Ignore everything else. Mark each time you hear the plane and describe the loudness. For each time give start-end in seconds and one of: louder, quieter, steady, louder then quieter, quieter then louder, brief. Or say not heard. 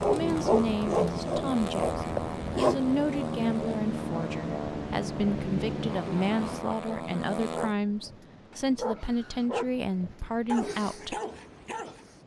0.0-7.8 steady.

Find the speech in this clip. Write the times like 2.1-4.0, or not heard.
0.1-11.2.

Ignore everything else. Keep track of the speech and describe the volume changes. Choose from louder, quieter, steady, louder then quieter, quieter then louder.
steady.